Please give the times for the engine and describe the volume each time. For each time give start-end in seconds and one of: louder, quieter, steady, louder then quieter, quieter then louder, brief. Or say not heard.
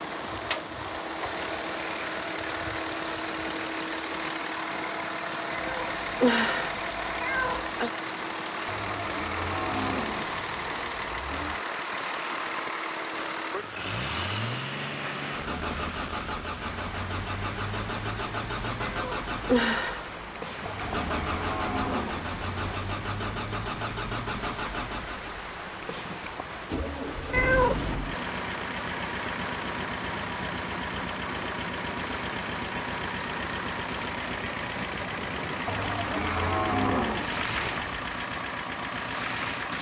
0.0-39.7 steady.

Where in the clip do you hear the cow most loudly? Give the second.
37 s.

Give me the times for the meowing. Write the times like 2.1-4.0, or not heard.
5.5-7.9, 18.8-20.4, 27.3-28.0.